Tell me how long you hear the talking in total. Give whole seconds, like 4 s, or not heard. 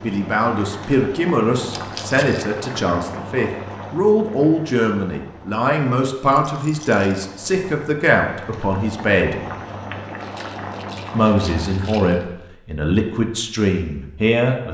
13 s.